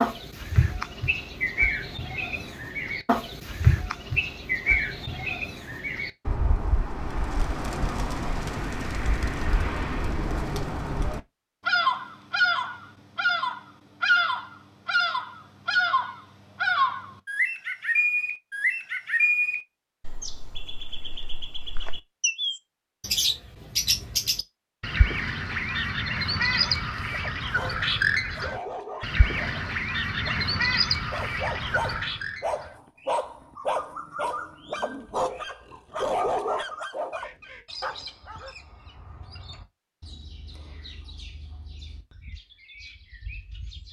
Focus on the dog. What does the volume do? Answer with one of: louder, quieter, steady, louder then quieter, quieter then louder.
louder.